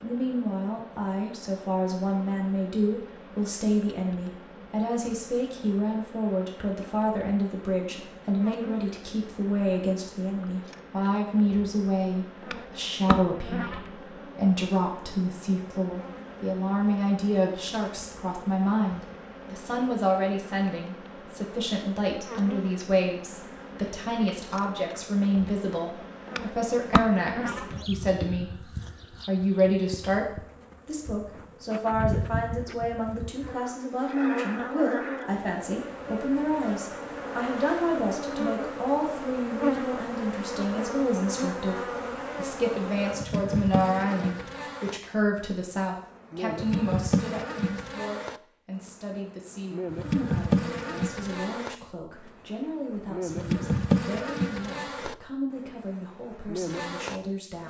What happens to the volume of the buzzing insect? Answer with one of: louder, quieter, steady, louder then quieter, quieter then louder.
louder.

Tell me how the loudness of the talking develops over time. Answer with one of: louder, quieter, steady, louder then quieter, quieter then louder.
quieter.